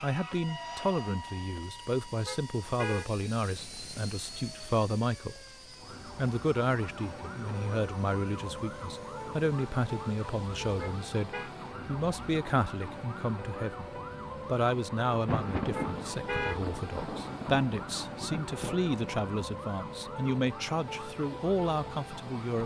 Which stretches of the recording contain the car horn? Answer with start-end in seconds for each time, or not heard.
2.2-3.1, 10.8-11.5, 15.7-16.6.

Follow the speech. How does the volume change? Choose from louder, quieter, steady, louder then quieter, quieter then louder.
steady.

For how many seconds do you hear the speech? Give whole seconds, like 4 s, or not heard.
22 s.